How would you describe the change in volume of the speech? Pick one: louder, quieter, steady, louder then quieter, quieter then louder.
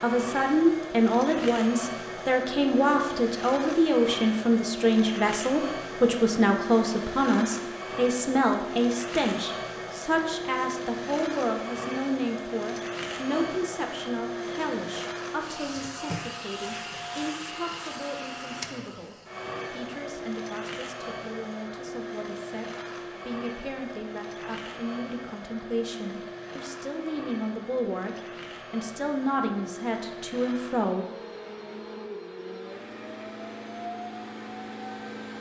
quieter then louder.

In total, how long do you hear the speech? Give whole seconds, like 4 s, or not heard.
31 s.